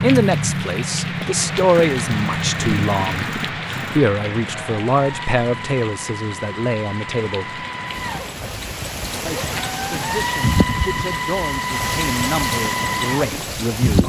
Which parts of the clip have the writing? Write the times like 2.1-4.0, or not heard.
not heard.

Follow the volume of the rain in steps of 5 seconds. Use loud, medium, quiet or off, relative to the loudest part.
loud, medium, loud.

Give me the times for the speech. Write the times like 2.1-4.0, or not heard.
0.0-7.6, 9.2-14.0.